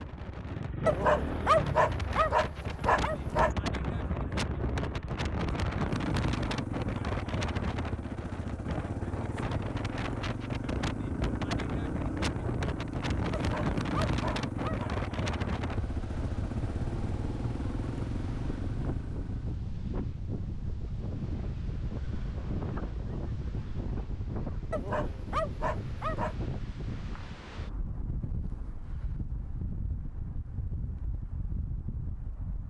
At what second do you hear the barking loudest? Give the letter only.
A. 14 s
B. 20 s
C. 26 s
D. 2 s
D.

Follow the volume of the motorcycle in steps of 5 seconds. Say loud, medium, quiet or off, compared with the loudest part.
loud, loud, loud, loud, off, off, off.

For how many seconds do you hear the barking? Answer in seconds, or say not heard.
6 s.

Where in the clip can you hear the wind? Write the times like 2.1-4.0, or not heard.
0.0-32.6.